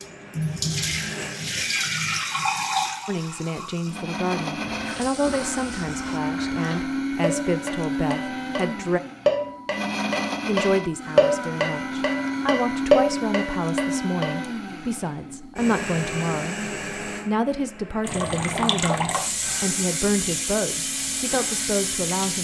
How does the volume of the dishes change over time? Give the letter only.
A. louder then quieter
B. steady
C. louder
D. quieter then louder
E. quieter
C.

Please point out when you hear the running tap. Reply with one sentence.
The running tap can be heard from 0.0 to 6.2 s and from 18.0 to 22.4 s.